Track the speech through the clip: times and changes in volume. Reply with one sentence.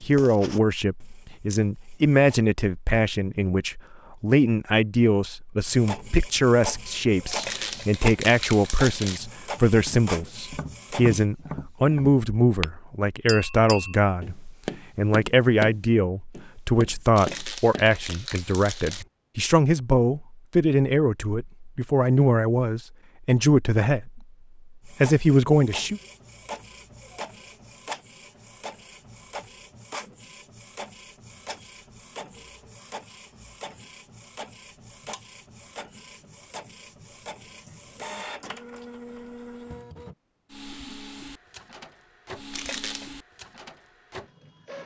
You can hear the speech from 0.0 to 24.2 s, at a steady volume; and briefly from 24.9 to 26.0 s.